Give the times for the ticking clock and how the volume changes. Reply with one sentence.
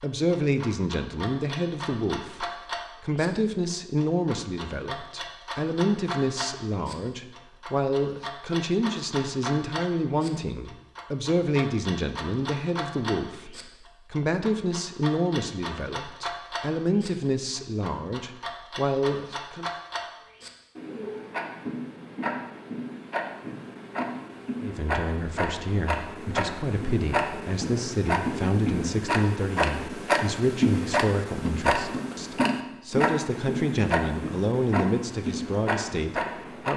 The ticking clock can be heard from 0.0 to 36.7 s, getting louder.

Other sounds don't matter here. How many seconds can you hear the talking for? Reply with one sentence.
You can hear the talking for 32 seconds altogether.